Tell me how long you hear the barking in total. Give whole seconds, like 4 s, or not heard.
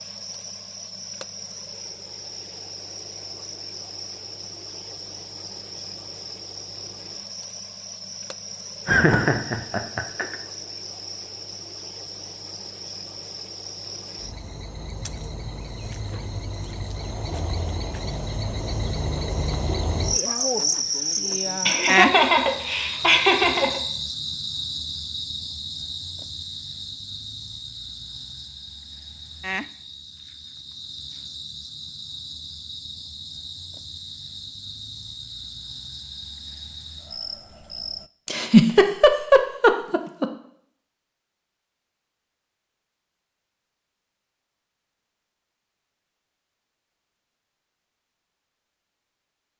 not heard.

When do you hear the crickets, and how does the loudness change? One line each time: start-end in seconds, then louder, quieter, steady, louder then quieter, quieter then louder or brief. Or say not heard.
0.0-38.1 louder then quieter.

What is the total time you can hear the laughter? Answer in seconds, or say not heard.
6 s.